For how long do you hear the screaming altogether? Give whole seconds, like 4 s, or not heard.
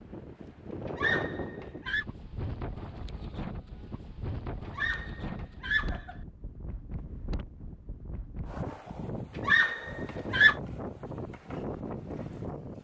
4 s.